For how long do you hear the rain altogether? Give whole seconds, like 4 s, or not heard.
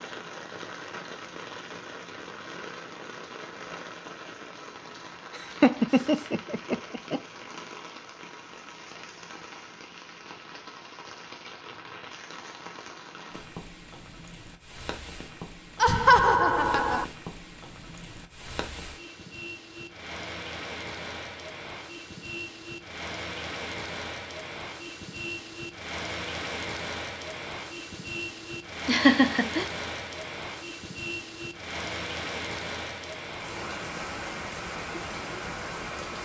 36 s.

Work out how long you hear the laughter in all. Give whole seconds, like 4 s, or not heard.
4 s.